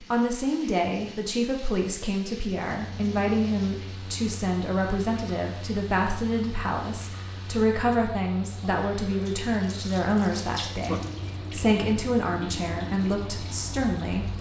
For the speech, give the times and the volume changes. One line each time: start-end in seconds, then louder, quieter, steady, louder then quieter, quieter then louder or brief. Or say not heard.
0.0-14.3 steady.